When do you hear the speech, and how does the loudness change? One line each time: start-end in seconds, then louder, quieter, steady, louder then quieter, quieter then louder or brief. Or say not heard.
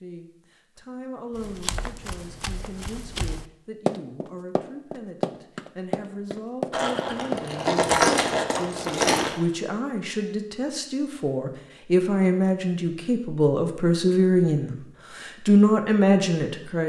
0.0-16.8 louder.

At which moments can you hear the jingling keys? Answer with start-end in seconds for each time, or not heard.
6.7-9.3.